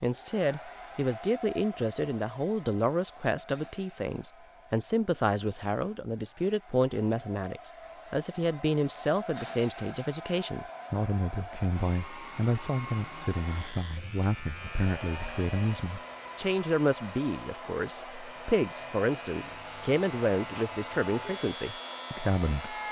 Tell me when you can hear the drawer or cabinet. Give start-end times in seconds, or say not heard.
not heard.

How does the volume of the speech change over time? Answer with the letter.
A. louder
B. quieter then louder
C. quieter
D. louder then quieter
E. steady
E.